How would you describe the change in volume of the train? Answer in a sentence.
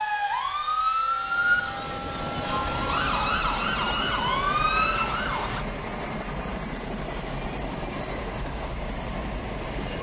The loudness of the train stays about the same.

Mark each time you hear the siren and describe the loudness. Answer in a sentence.
The siren can be heard from 0.0 to 5.7 s, at a steady volume.